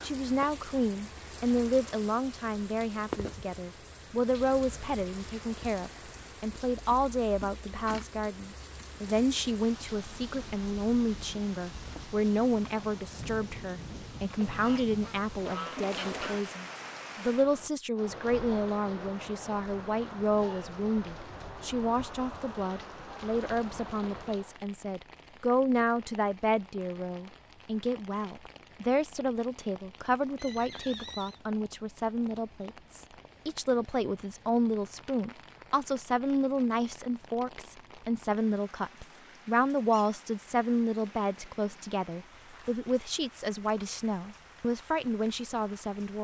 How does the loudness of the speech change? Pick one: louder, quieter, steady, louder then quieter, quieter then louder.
steady.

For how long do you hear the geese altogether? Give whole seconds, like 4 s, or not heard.
2 s.